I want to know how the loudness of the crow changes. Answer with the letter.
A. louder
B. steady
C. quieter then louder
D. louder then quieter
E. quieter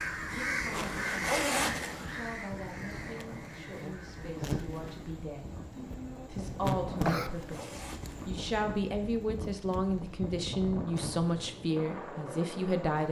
E.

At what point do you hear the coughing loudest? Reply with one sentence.
The loudest moment of the coughing is at 7 seconds.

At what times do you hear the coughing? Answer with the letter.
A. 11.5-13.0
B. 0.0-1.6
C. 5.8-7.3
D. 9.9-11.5
C.